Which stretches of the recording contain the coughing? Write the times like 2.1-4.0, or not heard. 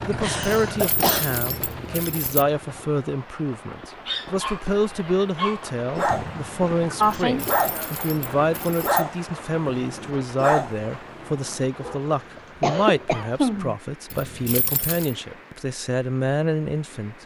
0.1-1.2, 6.0-7.5, 12.3-13.8.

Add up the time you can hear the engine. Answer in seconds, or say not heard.
3 s.